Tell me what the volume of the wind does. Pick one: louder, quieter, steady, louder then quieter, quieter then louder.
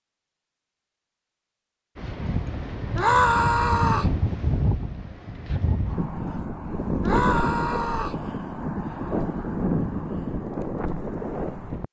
steady.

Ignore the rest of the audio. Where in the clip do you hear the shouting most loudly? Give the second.
3 s.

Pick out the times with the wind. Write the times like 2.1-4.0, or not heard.
1.9-11.8.